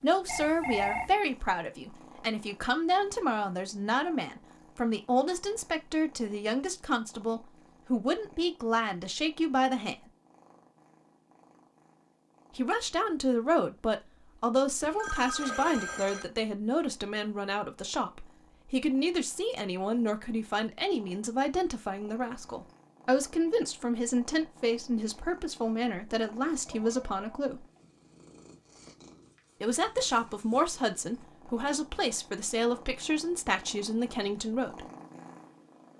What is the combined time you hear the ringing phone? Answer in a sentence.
The ringing phone can be heard for 3 seconds in total.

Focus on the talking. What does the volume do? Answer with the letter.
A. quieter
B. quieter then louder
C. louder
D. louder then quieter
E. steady
E.